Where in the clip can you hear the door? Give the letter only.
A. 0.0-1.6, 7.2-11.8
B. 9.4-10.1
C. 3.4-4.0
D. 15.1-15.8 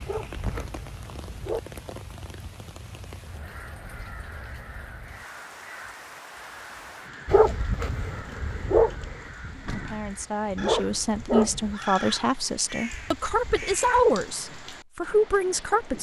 B.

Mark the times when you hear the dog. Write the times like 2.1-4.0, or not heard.
0.0-1.6, 7.2-11.8.